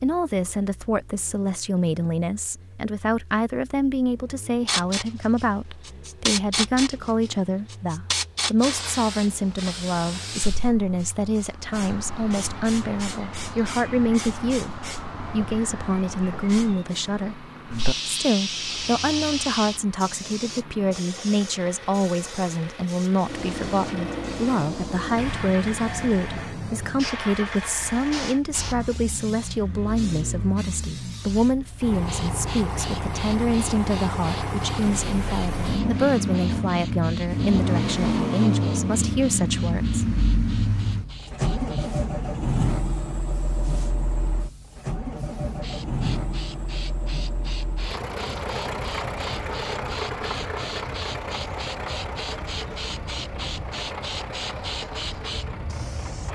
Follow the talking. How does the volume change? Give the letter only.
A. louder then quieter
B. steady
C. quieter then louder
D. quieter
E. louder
B.